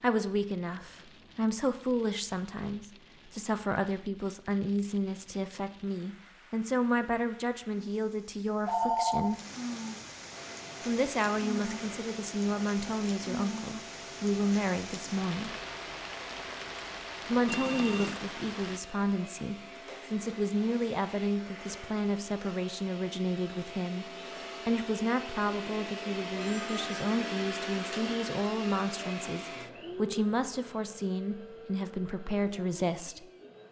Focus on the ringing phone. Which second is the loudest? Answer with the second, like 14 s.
9 s.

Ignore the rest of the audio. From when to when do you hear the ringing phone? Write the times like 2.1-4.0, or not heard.
8.7-9.3, 17.4-18.2, 26.4-27.1.